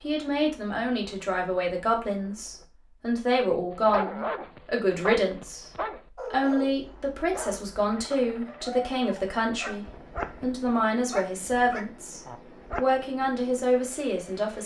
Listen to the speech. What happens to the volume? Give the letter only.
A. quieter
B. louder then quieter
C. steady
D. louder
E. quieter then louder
C.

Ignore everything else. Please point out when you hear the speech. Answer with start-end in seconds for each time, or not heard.
0.0-5.7, 6.3-14.6.